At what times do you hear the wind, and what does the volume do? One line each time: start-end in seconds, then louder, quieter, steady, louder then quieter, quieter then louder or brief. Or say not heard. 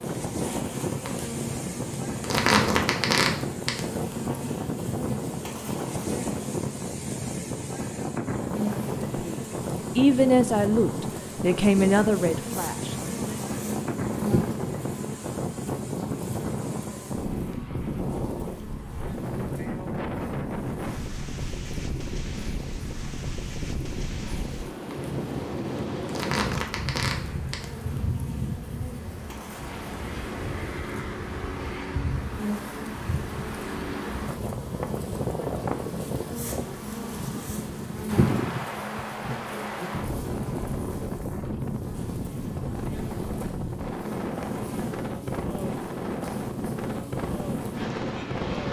0.0-48.6 steady.